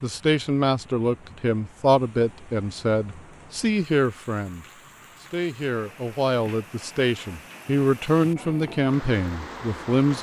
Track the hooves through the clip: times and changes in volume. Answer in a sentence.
The hooves can't be heard in this clip.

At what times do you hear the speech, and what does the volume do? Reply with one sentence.
You can hear the speech from 0.0 to 10.1 s, getting quieter then louder.